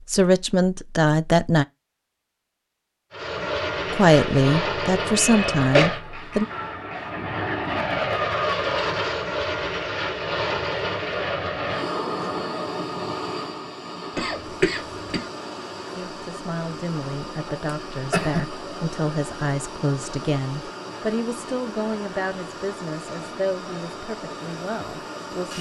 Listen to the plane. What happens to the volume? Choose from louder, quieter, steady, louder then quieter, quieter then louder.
quieter.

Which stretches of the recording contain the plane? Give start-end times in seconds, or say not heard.
3.1-25.5.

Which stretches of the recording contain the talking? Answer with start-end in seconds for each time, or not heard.
0.1-1.6, 3.9-6.5, 15.9-25.5.